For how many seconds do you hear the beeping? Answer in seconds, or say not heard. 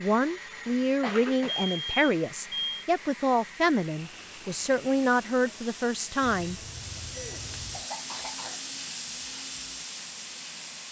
3 s.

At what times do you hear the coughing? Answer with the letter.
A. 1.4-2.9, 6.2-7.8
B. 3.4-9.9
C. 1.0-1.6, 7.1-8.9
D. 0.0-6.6
C.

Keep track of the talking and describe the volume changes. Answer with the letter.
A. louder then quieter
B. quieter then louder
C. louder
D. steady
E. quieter
D.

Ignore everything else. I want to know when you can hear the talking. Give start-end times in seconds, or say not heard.
0.0-6.6.